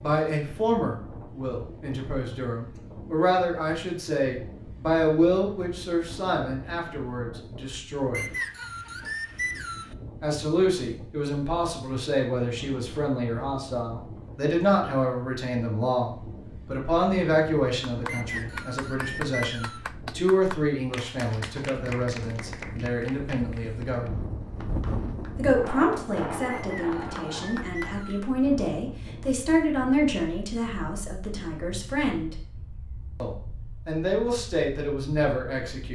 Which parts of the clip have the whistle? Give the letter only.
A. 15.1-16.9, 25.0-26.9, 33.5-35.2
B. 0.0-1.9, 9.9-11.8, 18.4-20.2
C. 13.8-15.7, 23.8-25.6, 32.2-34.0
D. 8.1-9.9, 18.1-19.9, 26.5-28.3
D.